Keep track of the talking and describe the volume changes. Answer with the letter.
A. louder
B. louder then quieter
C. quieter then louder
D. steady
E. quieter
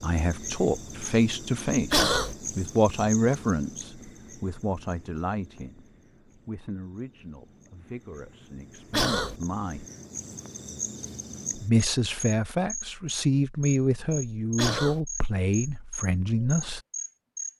C.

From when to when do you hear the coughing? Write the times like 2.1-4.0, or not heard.
1.9-2.4, 8.9-9.3, 14.6-15.0.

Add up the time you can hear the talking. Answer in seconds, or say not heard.
15 s.